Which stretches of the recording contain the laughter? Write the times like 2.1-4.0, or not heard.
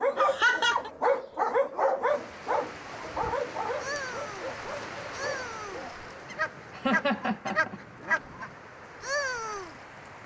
0.1-0.9, 6.3-8.2.